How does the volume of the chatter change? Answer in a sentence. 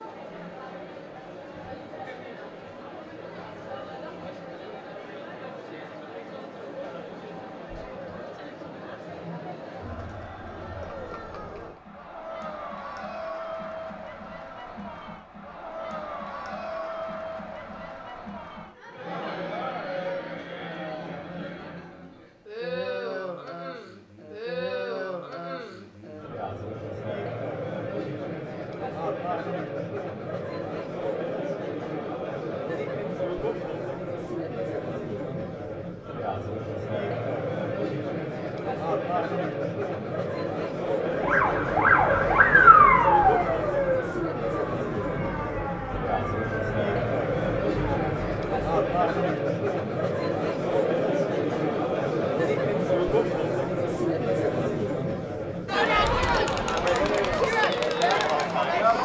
The volume of the chatter goes up.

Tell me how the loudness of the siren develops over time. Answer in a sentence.
The volume of the siren goes down.